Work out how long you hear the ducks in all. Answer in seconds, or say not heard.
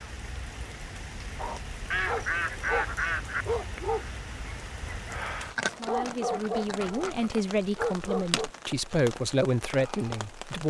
4 s.